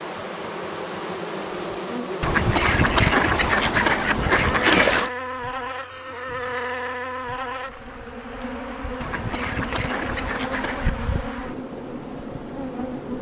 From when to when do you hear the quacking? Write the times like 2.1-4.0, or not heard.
2.2-5.1, 9.0-11.0.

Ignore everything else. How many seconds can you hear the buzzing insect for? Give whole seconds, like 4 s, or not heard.
13 s.